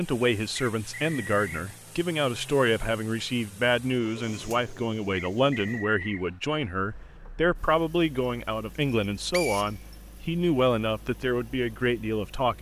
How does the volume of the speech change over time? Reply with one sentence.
The volume of the speech stays about the same.